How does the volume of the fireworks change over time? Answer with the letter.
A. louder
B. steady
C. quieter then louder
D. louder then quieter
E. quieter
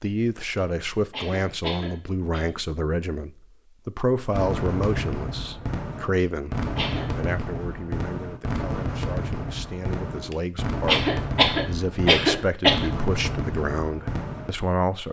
B.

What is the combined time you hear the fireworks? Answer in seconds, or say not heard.
10 s.